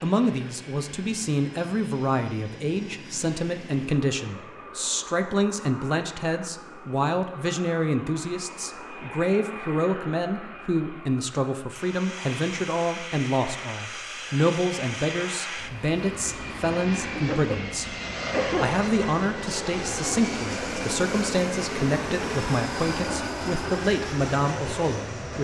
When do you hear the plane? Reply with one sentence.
The plane can be heard from 0.0 to 25.3 s.